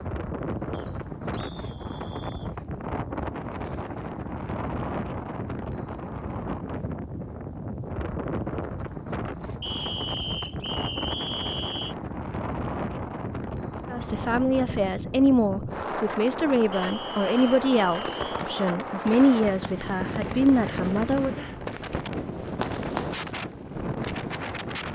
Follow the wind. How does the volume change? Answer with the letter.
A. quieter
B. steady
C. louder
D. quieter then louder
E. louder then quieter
B.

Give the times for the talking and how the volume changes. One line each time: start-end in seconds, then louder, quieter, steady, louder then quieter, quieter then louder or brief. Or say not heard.
13.9-21.4 steady.